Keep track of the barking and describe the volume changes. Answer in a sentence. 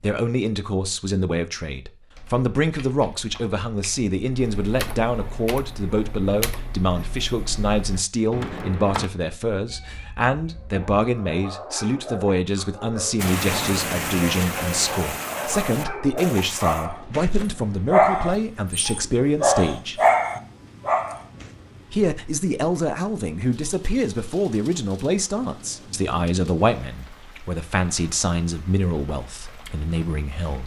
The loudness of the barking goes up.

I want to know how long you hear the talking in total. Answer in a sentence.
You can hear the talking for 29 seconds altogether.